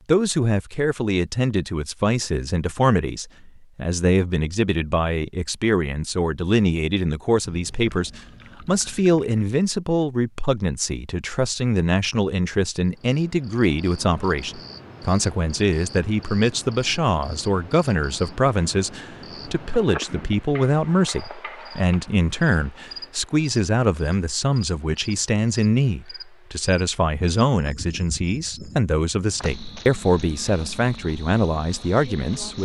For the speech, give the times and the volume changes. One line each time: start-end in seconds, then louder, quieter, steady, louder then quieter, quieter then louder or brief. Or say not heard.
0.1-32.6 steady.